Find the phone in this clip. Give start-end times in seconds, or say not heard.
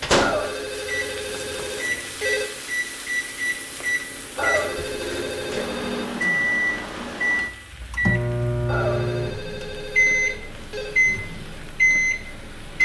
0.1-2.5, 4.3-6.1, 8.7-11.0.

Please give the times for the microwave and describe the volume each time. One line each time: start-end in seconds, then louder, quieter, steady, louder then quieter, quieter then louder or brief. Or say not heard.
0.0-12.8 louder.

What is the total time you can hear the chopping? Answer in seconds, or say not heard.
not heard.